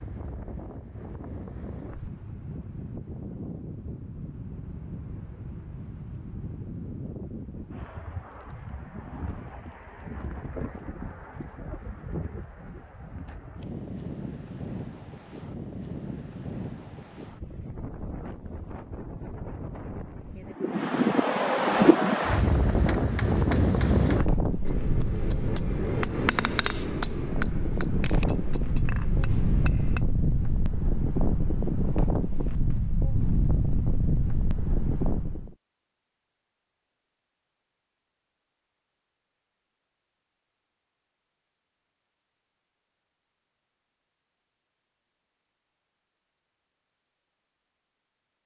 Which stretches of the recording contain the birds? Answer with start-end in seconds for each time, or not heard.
not heard.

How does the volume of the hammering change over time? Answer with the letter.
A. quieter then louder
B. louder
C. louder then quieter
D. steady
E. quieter
C.